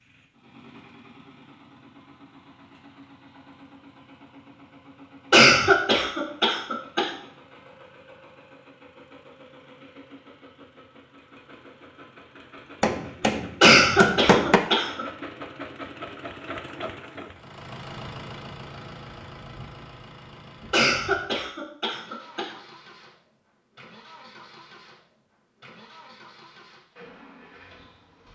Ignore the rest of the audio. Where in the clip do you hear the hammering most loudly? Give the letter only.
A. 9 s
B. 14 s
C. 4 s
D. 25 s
B.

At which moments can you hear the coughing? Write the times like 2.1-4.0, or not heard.
5.3-7.1, 13.6-15.1, 20.7-22.4.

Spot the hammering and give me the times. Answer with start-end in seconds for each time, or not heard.
12.8-14.6.